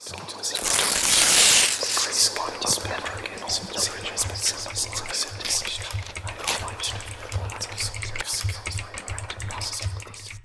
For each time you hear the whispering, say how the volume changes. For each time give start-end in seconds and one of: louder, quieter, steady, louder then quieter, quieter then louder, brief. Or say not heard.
0.0-10.4 quieter.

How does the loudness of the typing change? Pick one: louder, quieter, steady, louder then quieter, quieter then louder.
louder.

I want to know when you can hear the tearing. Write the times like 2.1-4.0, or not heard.
0.6-2.1, 5.4-7.8.